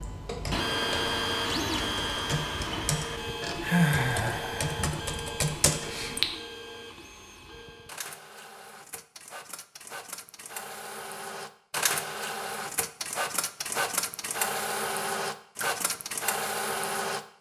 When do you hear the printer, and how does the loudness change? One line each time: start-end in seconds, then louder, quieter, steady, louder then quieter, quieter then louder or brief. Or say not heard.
0.0-17.3 quieter then louder.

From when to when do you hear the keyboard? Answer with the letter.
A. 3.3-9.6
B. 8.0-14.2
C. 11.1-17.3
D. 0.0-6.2
D.